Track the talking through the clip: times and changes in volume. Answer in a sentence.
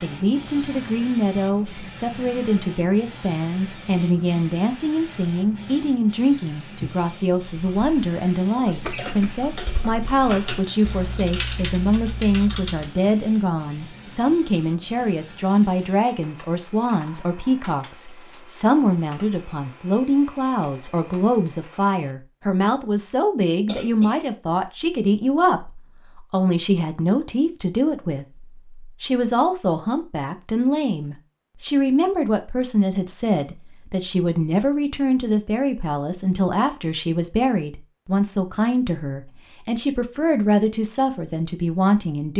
You can hear the talking from 0.0 to 42.3 s, at a steady volume.